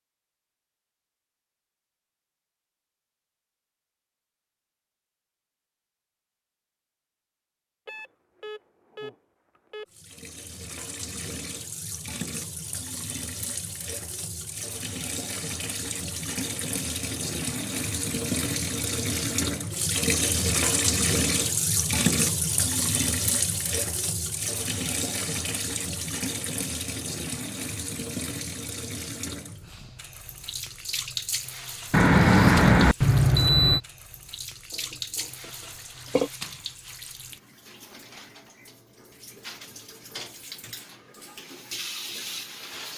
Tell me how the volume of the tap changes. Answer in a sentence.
The loudness of the tap goes up, then down.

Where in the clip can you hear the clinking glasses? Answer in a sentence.
The clinking glasses can be heard from 34.8 to 36.3 s.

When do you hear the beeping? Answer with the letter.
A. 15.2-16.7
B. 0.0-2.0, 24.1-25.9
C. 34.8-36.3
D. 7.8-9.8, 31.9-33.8
D.